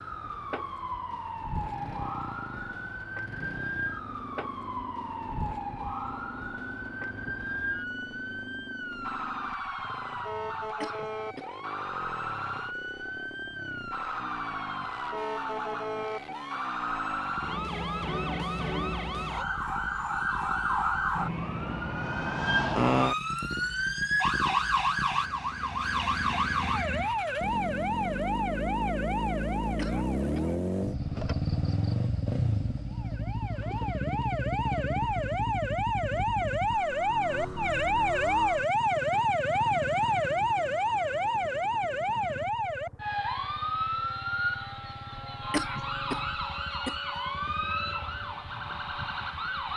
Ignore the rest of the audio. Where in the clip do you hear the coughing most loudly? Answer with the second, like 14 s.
46 s.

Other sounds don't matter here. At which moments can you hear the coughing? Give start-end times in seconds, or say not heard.
10.8-11.6, 29.8-30.6, 45.5-47.1.